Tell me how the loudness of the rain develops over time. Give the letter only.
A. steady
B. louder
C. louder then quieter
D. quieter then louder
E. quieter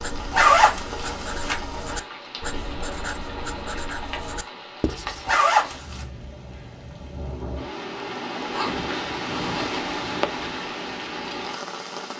B.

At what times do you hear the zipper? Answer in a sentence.
The zipper can be heard from 0.3 to 1.6 s, from 5.2 to 6.0 s and from 8.5 to 9.8 s.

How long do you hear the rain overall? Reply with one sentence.
The rain can be heard for 12 seconds in total.